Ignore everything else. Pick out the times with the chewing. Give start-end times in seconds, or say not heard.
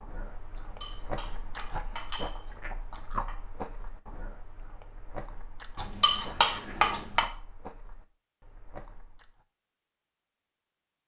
0.0-9.4.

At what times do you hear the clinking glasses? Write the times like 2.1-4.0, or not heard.
0.6-3.3, 5.8-7.2.